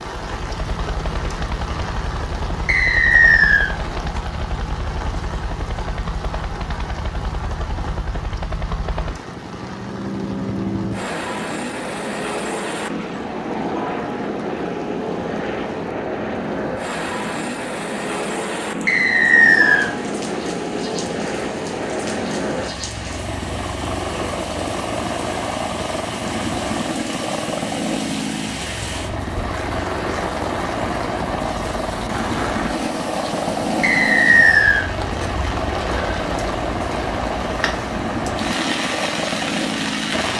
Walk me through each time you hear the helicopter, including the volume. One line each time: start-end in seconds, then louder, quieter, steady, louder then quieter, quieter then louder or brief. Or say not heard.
0.0-40.3 louder.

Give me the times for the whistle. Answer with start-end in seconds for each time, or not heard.
2.6-3.7, 18.9-19.9, 33.8-34.9.